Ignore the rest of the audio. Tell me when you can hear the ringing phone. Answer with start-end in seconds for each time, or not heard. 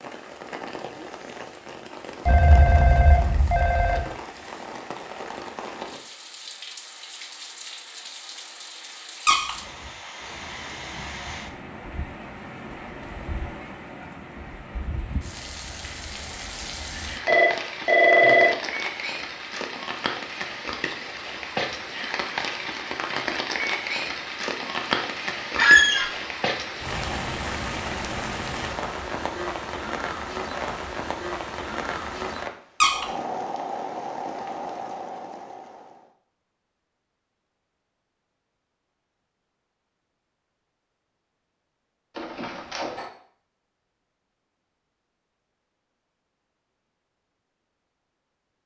2.2-4.0, 16.9-18.6, 42.1-43.1.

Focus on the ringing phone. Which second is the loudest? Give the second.
18 s.